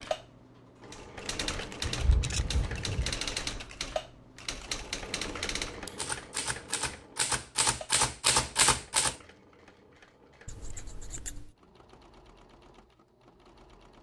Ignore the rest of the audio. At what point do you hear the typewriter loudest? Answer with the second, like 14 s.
9 s.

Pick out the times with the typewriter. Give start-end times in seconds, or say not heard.
0.9-9.2.